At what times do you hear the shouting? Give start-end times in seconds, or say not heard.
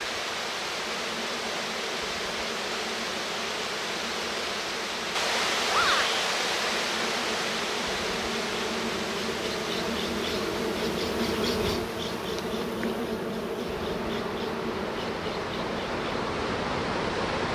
5.7-6.2.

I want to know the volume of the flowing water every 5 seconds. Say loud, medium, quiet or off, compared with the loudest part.
loud, loud, medium, loud.